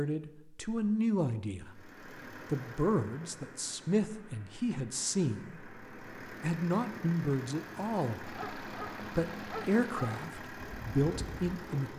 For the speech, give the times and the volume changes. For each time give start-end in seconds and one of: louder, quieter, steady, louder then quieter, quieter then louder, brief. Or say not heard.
0.0-11.9 steady.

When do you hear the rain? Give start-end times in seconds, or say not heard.
not heard.